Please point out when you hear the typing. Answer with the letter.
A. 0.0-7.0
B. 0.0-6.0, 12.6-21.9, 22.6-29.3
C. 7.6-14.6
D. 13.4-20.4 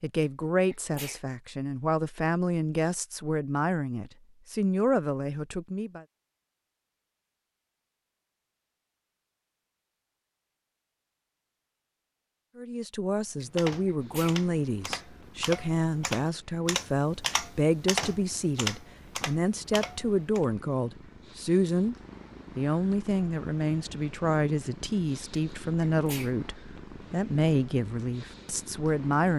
D.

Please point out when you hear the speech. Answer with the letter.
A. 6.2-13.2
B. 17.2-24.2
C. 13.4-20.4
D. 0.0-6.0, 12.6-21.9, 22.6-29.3
D.